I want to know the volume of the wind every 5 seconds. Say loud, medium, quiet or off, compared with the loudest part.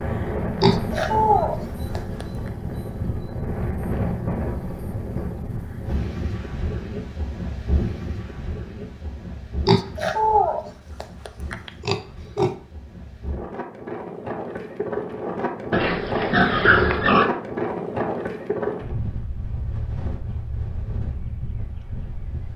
loud, medium, medium, loud, medium.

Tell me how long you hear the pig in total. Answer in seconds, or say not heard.
6 s.